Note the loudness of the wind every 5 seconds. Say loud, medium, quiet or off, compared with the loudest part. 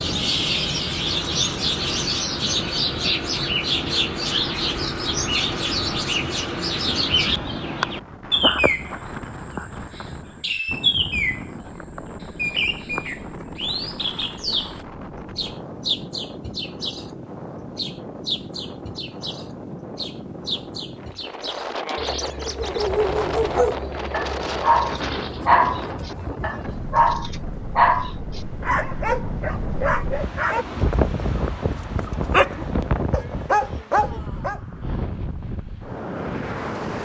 medium, medium, medium, medium, loud, loud, loud, loud.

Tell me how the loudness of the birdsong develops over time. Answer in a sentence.
The volume of the birdsong goes down.